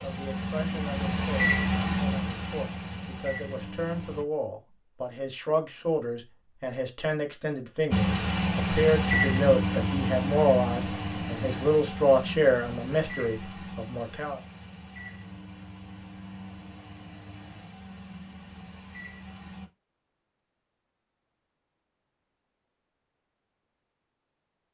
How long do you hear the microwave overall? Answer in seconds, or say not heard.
16 s.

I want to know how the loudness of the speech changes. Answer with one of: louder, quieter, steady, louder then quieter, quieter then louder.
louder.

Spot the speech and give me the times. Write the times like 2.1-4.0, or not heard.
0.0-14.4.